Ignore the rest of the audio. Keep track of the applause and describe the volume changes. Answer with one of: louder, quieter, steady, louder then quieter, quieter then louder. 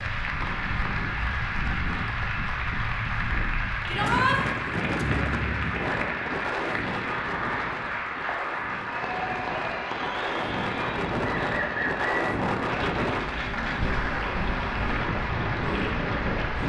steady.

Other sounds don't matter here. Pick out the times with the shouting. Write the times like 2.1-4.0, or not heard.
3.9-4.4.